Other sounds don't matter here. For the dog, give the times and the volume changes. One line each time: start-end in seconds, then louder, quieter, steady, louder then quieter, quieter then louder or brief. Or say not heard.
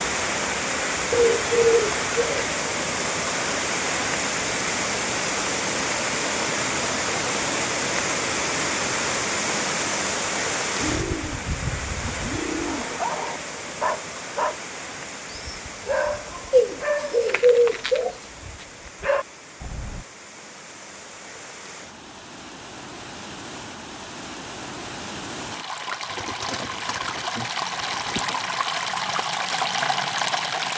12.7-14.6 brief
15.3-20.1 quieter then louder.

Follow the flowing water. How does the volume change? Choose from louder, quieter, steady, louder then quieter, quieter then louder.
quieter then louder.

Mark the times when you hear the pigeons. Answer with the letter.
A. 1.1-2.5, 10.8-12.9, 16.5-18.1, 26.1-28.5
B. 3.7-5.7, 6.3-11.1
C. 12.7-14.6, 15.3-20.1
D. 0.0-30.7
A.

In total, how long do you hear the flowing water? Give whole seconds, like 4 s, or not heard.
31 s.